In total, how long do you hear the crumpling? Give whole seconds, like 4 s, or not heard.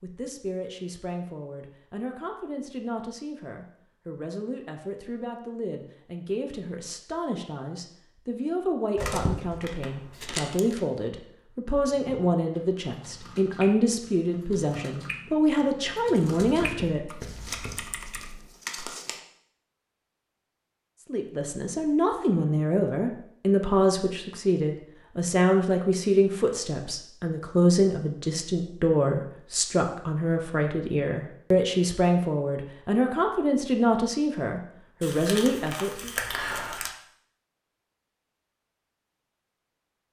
6 s.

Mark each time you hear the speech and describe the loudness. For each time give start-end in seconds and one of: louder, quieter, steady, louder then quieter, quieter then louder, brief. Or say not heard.
0.0-17.0 louder
21.1-36.1 steady.